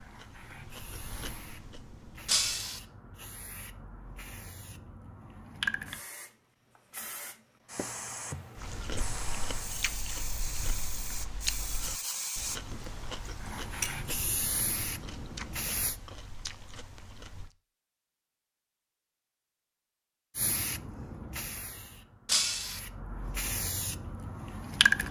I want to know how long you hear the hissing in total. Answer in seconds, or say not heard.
21 s.